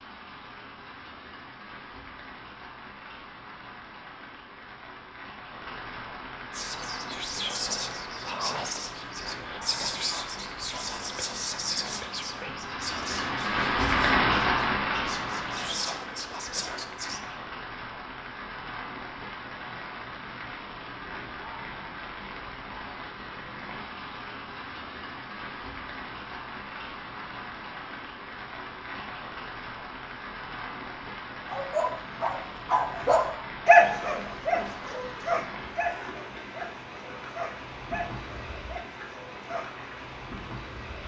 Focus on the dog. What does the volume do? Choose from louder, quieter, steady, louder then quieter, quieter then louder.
louder then quieter.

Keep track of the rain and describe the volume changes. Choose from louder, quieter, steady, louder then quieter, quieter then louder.
louder then quieter.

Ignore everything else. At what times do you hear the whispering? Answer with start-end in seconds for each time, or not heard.
6.5-17.2.